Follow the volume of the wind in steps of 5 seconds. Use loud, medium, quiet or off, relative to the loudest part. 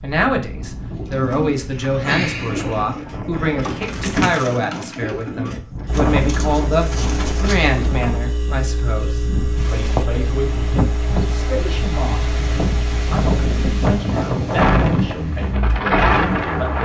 medium, medium, loud, loud.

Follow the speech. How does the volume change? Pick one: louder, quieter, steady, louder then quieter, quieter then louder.
quieter.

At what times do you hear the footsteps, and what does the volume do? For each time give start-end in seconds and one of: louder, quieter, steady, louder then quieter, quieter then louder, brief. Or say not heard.
not heard.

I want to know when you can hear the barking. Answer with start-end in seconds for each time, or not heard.
not heard.